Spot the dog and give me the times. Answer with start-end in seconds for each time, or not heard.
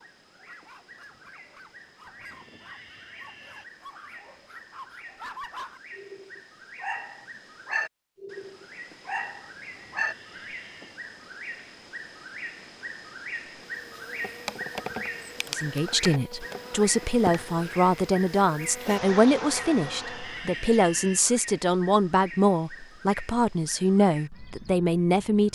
0.0-10.2.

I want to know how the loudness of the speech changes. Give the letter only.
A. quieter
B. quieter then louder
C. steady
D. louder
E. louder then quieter
C.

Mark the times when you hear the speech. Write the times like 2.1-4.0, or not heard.
15.5-25.5.